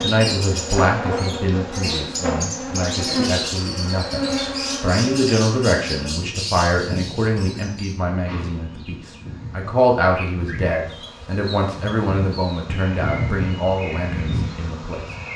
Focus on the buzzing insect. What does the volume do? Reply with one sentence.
The volume of the buzzing insect goes down, then up.